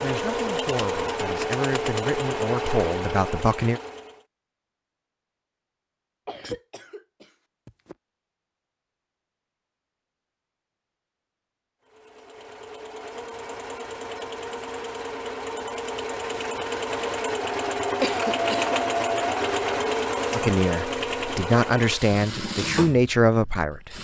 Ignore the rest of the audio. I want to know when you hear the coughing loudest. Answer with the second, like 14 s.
18 s.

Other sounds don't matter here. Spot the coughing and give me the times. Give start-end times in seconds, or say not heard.
6.2-8.0, 18.0-18.8.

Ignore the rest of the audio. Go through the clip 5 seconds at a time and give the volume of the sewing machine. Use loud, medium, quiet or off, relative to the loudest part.
loud, off, medium, loud, loud.